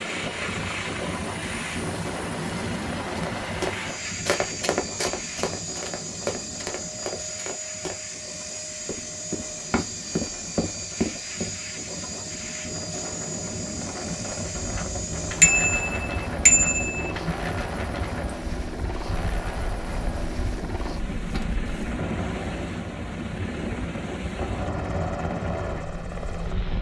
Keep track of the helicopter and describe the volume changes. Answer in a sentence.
The volume of the helicopter stays about the same.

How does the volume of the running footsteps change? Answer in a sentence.
The volume of the running footsteps goes down, then up.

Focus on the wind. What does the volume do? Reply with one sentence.
The volume of the wind goes down, then up.